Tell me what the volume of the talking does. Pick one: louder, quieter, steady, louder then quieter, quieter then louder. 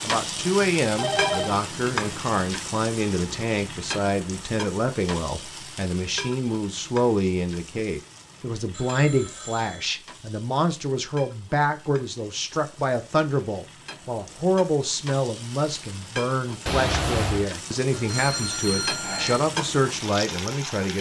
steady.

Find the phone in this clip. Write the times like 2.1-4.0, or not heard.
0.9-1.6, 8.7-9.9, 17.9-19.4.